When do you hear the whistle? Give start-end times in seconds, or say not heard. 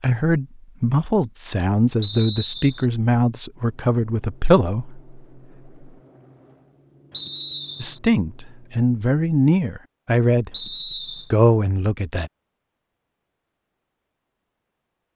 2.0-2.9, 7.1-8.0, 10.5-11.3.